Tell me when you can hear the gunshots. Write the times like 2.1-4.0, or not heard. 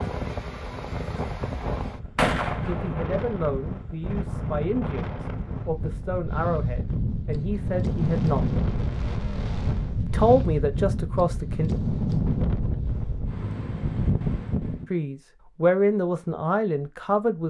2.1-3.1.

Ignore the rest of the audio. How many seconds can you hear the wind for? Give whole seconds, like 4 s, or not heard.
15 s.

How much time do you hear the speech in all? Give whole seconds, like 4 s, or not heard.
10 s.